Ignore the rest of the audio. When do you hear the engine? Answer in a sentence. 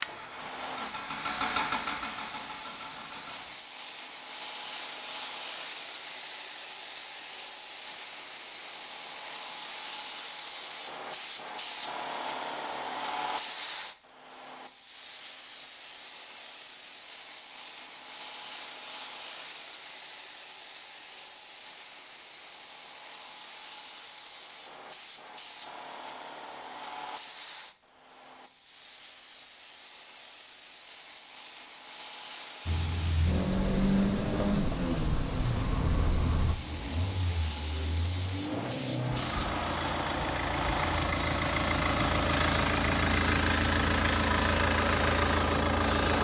You can hear the engine from 0.0 to 3.5 s and from 32.6 to 46.1 s.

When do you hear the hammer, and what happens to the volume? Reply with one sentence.
You can't hear the hammer here.